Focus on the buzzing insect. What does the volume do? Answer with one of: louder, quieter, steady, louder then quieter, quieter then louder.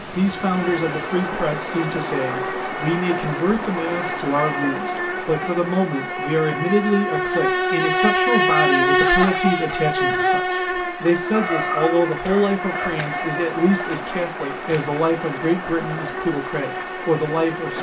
louder then quieter.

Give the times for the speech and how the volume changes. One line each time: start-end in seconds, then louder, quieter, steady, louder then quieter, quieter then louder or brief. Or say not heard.
0.0-17.7 steady.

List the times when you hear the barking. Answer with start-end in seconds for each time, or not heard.
11.3-13.0.